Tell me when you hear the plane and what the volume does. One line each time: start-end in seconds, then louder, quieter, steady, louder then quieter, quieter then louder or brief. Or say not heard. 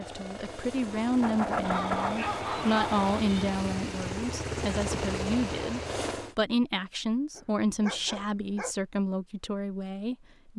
0.0-6.3 louder.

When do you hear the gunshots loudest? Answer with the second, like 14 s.
2 s.